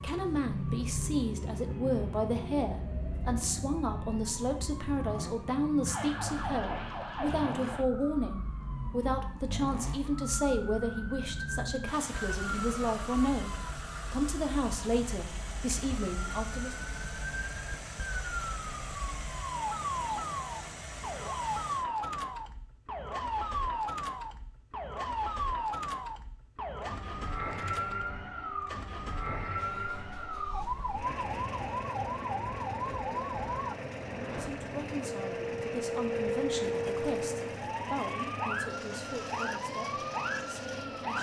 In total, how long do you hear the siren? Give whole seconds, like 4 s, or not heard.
41 s.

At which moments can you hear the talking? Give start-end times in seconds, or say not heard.
0.0-16.9, 34.4-41.1.